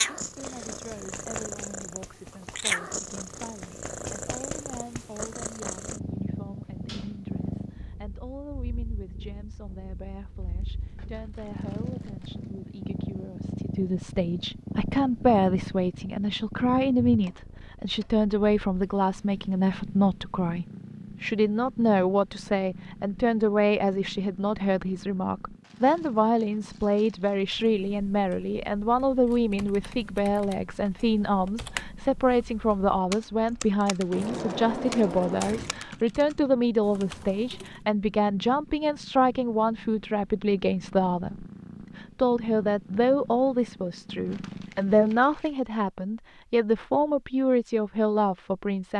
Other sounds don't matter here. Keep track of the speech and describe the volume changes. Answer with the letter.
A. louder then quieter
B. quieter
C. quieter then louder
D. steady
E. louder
E.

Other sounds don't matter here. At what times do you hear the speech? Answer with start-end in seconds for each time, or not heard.
0.2-48.9.